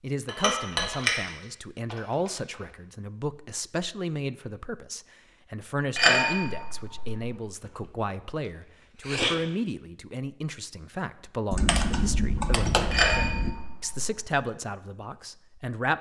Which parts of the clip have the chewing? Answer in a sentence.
The chewing can be heard from 7.6 to 9.4 s.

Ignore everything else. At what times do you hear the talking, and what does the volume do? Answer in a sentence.
The talking can be heard from 0.0 to 15.9 s, at a steady volume.